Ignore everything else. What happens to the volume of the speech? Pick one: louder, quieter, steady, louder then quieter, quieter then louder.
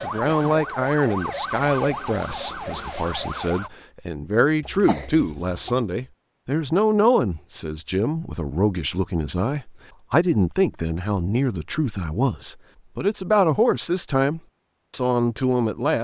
steady.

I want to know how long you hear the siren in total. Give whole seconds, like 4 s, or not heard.
4 s.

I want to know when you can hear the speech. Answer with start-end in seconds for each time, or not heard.
0.0-15.9.